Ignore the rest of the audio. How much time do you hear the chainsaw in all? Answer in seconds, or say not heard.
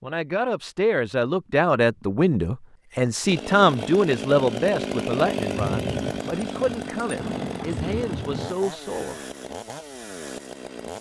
8 s.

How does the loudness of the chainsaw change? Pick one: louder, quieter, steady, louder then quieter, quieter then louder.
quieter.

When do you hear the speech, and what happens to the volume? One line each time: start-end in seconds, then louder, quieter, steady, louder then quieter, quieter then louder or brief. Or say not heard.
0.0-9.2 quieter.